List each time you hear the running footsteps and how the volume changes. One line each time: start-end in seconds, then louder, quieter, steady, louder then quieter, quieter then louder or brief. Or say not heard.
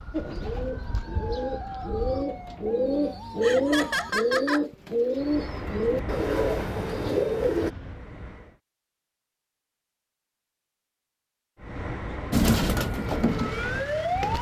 not heard.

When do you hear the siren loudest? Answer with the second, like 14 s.
14 s.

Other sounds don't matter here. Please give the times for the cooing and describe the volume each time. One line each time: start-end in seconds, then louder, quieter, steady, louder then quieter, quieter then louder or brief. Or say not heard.
0.1-7.7 louder
12.3-14.3 brief.